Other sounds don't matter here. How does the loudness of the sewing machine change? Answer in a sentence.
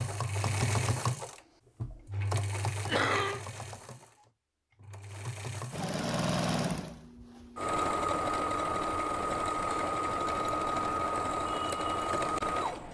The volume of the sewing machine goes down, then up.